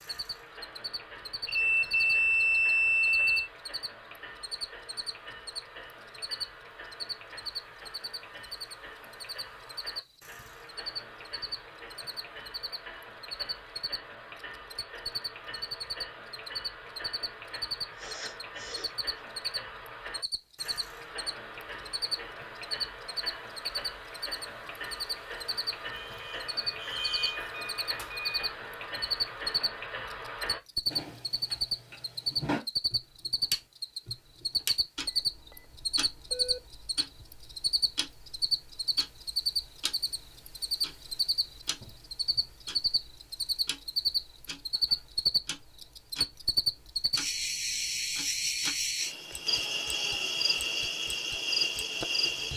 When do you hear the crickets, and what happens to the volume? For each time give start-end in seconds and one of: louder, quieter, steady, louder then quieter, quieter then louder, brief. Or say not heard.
0.0-52.5 louder.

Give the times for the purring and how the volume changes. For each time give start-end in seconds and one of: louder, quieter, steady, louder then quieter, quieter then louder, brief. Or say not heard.
not heard.